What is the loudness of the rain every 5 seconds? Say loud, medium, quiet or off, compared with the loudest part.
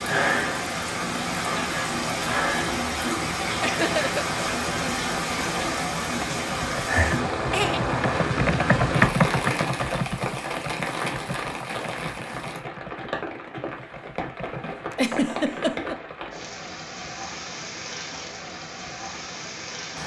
loud, loud, medium, medium.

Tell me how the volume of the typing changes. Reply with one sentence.
The volume of the typing goes up, then down.